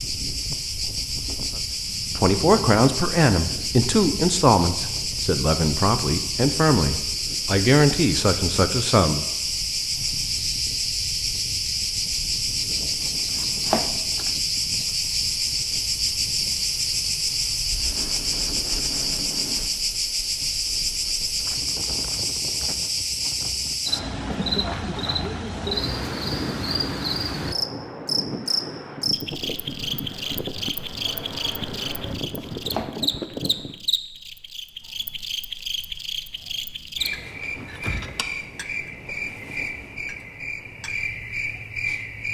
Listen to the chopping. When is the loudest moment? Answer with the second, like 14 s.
14 s.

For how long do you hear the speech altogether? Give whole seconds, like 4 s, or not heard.
8 s.